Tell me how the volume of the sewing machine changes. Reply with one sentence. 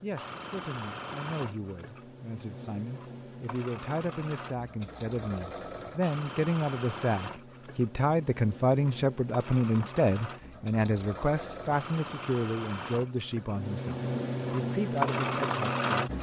The loudness of the sewing machine goes up.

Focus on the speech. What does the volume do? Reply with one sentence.
The volume of the speech goes up, then down.